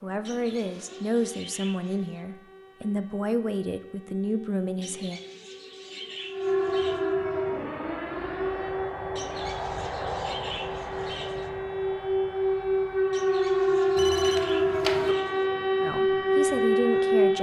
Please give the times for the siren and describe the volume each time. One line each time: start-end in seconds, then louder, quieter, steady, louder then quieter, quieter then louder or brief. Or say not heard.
0.0-17.3 louder.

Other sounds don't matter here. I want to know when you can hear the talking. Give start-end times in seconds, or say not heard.
0.0-5.2, 15.8-17.3.